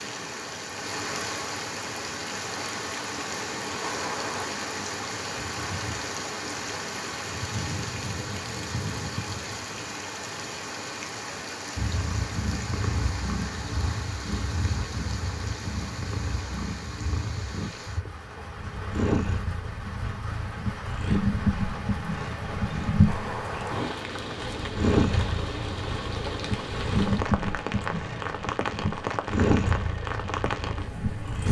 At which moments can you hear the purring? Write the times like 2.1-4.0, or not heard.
11.8-31.4.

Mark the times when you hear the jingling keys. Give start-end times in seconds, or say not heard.
3.8-4.6, 23.1-24.1.